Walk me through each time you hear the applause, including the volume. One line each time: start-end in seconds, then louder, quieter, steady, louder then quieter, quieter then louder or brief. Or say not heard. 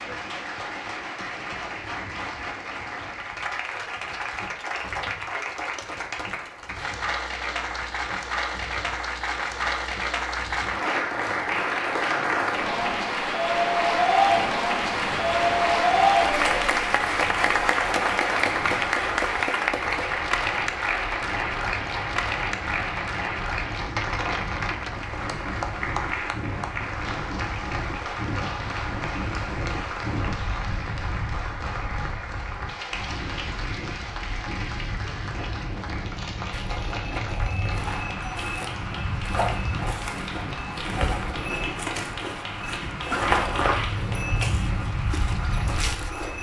0.0-46.3 louder then quieter.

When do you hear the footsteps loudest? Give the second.
43 s.